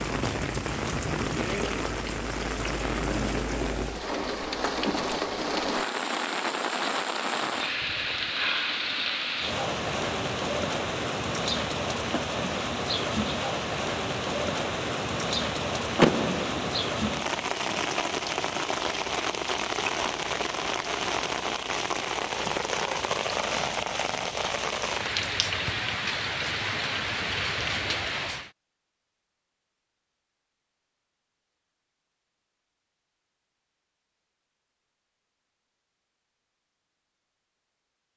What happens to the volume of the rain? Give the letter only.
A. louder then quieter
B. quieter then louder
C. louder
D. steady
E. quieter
D.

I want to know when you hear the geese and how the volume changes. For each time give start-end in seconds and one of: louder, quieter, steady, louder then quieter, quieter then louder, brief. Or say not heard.
not heard.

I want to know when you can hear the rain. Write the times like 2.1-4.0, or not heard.
0.0-28.5.